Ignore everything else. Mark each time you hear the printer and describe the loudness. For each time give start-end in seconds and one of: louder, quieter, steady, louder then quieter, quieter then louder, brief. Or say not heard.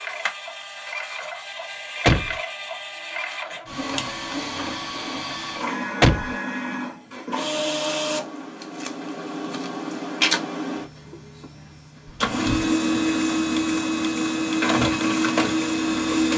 0.0-16.3 louder.